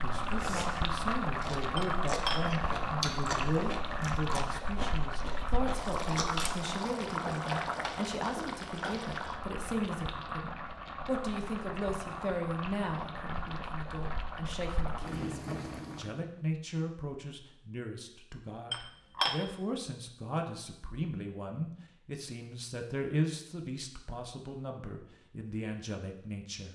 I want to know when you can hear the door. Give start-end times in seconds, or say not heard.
not heard.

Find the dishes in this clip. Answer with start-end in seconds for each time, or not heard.
1.8-2.4, 18.7-19.4.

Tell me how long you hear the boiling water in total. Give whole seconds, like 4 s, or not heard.
16 s.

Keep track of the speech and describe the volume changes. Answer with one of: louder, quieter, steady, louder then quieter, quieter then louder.
steady.